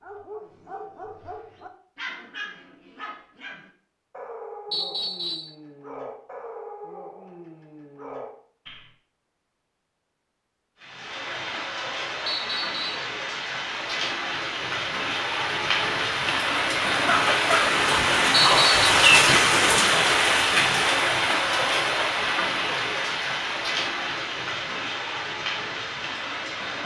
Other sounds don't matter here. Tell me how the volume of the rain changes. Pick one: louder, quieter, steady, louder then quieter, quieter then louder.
louder then quieter.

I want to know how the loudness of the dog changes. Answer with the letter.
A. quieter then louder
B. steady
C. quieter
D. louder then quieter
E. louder
B.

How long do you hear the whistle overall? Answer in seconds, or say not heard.
2 s.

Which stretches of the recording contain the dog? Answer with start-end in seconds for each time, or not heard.
0.0-8.9.